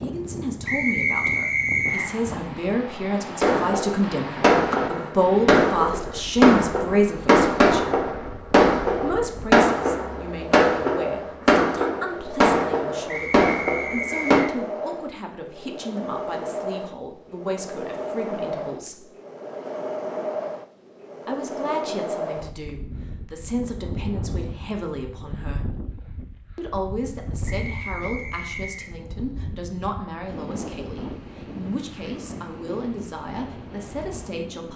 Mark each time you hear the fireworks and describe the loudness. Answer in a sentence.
You can hear the fireworks from 3.4 to 14.4 s, at a steady volume.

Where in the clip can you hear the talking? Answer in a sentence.
The talking can be heard from 0.0 to 8.0 s, from 8.9 to 19.1 s, from 21.2 to 25.8 s and from 26.6 to 34.7 s.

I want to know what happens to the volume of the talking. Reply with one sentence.
The loudness of the talking goes down.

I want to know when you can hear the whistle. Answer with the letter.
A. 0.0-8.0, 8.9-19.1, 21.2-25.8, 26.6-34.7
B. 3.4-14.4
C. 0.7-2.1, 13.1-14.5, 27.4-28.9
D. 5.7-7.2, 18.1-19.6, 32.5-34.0
C.